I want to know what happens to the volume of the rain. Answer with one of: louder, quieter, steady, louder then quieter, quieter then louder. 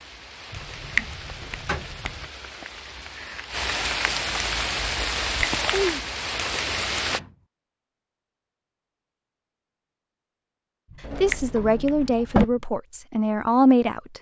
louder.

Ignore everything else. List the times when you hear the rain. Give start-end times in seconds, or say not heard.
0.0-7.2.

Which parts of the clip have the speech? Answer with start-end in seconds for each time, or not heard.
11.2-14.1.